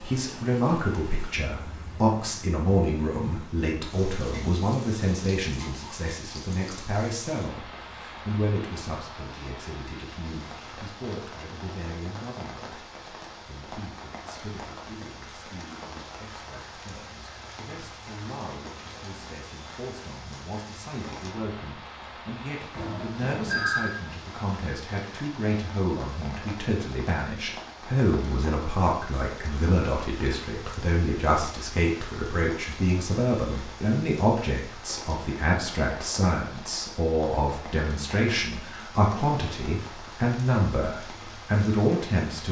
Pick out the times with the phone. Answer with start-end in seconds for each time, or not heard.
22.7-23.9.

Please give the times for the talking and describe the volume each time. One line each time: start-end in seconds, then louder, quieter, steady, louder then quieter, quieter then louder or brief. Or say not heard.
0.0-42.4 quieter then louder.